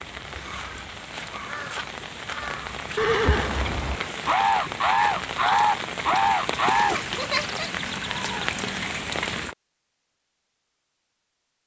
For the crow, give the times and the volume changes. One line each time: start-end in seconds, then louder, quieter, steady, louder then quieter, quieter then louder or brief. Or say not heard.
0.0-7.2 louder.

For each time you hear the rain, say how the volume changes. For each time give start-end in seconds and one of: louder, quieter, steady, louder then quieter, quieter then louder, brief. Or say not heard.
0.0-9.6 louder.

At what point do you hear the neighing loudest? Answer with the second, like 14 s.
3 s.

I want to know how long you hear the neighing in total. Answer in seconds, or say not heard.
3 s.